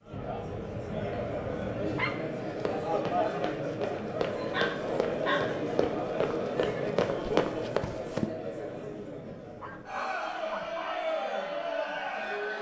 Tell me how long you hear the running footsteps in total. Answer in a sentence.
The running footsteps can be heard for 6 seconds in total.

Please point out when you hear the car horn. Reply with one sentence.
You can't hear the car horn here.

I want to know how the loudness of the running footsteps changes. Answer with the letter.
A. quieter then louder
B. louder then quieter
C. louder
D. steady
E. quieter
C.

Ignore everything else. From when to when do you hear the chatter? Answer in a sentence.
You can hear the chatter from 0.0 to 12.5 s.